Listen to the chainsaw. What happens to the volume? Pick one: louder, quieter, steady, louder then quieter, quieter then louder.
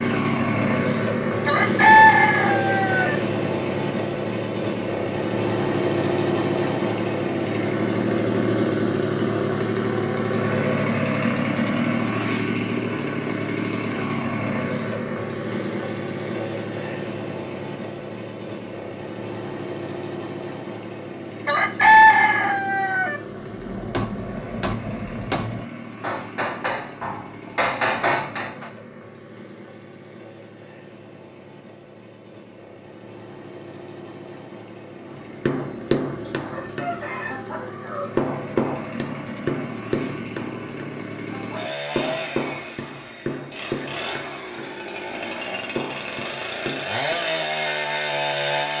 quieter then louder.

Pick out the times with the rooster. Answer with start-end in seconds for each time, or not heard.
1.4-3.1, 21.4-23.2, 36.2-38.1.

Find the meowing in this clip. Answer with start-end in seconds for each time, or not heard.
not heard.